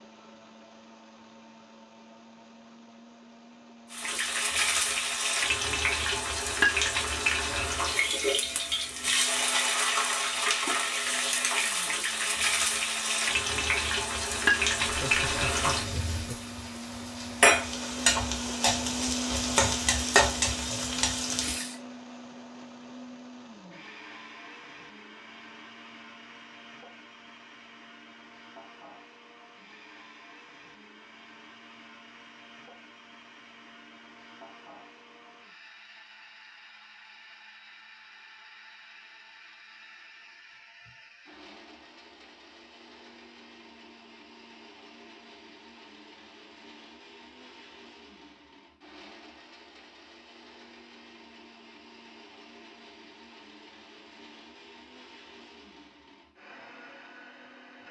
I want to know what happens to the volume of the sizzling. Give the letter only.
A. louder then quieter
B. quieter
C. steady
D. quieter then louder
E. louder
C.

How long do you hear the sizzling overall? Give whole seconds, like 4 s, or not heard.
18 s.